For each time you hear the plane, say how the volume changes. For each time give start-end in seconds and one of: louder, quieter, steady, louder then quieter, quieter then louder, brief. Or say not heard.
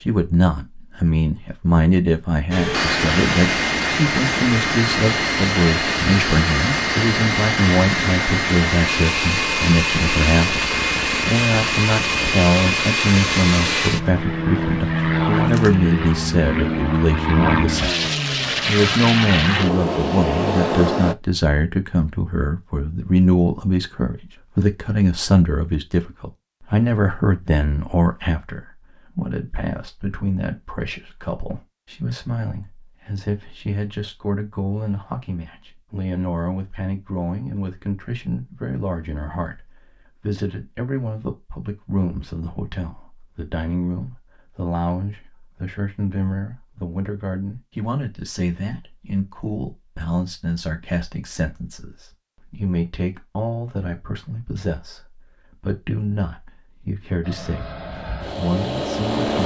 2.5-21.1 steady
57.2-59.4 brief.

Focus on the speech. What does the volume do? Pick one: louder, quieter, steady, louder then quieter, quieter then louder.
quieter.